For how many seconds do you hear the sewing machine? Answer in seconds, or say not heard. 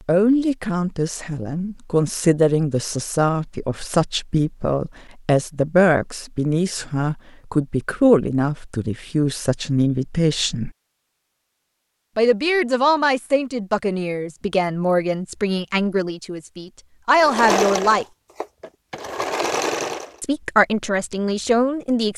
3 s.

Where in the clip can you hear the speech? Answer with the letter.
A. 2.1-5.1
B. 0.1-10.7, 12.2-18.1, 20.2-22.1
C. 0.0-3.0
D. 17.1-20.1
B.